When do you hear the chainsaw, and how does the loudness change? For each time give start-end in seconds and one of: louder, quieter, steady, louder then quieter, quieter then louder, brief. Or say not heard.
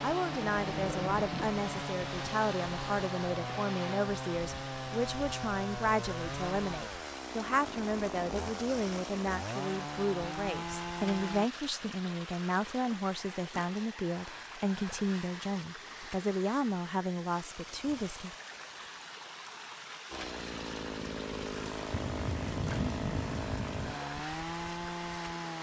0.0-11.5 steady
20.1-25.5 steady.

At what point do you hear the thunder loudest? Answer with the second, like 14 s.
23 s.